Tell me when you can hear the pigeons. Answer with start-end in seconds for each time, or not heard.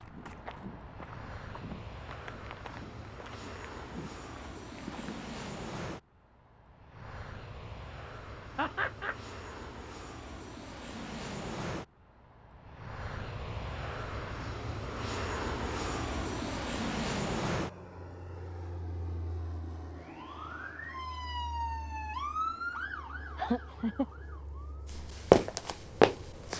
not heard.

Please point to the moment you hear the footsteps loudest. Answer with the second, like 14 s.
25 s.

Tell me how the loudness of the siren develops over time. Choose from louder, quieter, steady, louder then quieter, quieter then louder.
louder then quieter.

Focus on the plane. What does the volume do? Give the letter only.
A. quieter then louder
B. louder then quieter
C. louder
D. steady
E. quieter
B.